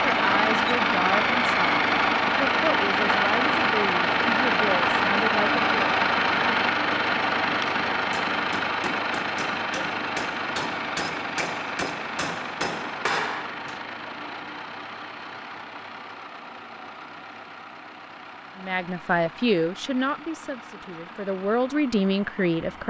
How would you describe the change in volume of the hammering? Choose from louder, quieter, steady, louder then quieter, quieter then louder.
louder.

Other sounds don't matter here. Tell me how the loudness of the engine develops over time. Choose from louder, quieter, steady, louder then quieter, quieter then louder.
quieter.